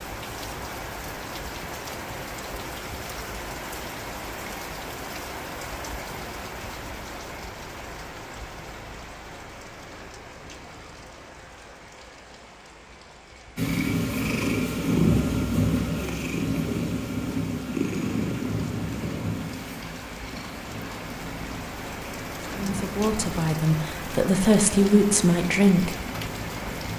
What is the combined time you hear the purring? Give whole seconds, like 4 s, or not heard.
13 s.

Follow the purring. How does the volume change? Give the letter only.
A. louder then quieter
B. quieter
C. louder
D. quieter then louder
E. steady
B.